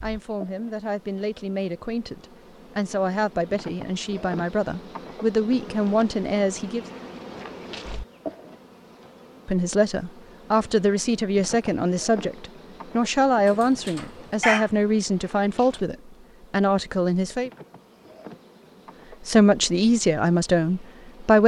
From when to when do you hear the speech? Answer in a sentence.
The speech can be heard from 0.0 to 6.8 s, from 9.4 to 17.5 s and from 19.2 to 21.4 s.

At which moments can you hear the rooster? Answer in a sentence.
The rooster can be heard from 13.4 to 14.7 s.